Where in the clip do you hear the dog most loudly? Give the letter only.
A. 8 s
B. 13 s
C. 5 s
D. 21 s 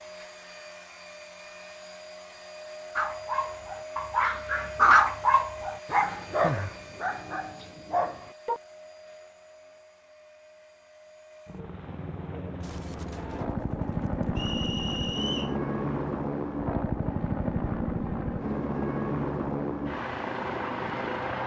C.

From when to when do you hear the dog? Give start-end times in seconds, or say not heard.
3.0-8.6.